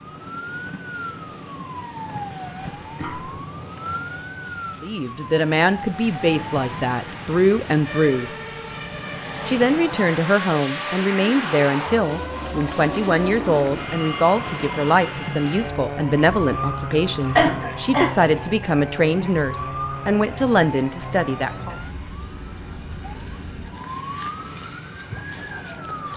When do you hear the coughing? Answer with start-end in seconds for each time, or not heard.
2.5-3.4, 17.4-18.2.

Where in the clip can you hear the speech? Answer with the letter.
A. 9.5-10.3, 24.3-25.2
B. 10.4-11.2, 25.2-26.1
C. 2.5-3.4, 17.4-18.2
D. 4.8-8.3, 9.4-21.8
D.